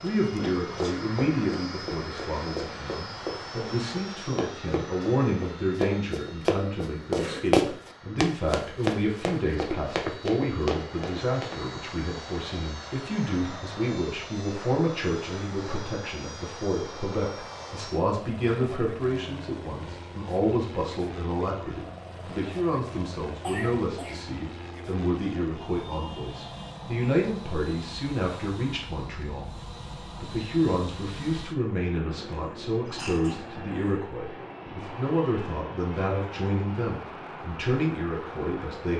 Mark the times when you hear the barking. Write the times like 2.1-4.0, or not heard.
not heard.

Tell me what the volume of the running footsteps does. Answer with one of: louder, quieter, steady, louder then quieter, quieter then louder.
louder then quieter.